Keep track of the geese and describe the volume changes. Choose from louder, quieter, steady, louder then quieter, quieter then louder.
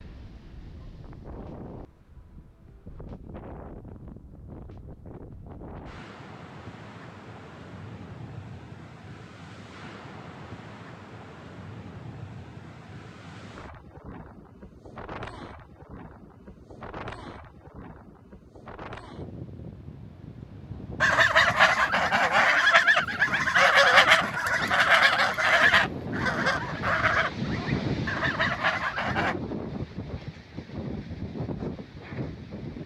quieter.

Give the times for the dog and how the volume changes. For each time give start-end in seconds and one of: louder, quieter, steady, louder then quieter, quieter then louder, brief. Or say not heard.
not heard.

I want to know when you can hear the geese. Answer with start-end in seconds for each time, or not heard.
21.0-29.4.